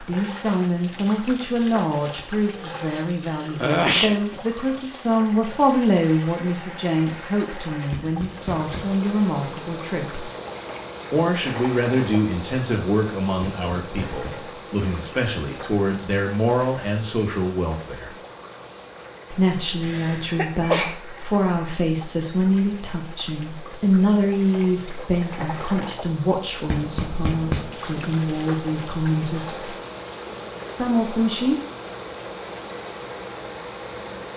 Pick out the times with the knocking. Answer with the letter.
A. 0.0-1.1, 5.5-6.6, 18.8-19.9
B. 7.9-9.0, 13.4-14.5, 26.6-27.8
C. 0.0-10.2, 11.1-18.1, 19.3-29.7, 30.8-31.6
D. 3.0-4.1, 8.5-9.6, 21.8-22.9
B.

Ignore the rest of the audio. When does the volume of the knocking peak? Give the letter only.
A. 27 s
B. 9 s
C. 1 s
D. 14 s
A.